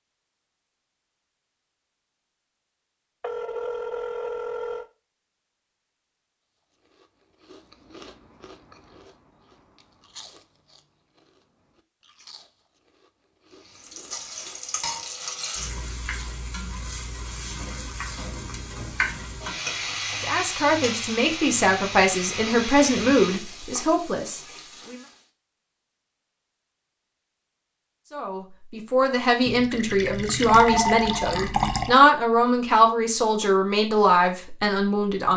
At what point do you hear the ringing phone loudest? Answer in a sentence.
The loudest moment of the ringing phone is at 31 seconds.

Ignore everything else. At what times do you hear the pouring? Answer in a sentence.
The pouring can be heard from 29.4 to 31.9 s.